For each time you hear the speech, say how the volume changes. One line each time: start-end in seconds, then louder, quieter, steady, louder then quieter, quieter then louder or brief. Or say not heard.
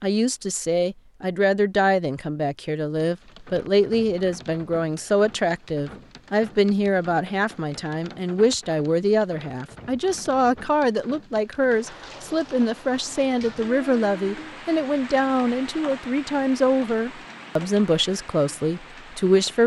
0.0-19.6 steady.